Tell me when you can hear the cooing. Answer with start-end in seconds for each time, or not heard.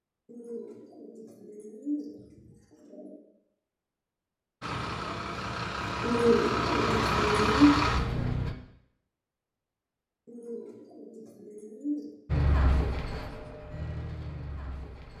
0.2-3.2, 6.0-7.7, 10.2-12.2.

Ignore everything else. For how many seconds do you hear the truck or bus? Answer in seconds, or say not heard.
7 s.